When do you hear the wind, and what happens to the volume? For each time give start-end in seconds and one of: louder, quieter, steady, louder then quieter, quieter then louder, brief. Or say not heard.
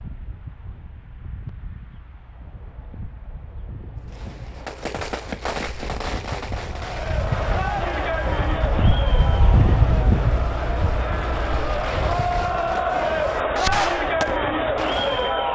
0.0-15.5 louder then quieter.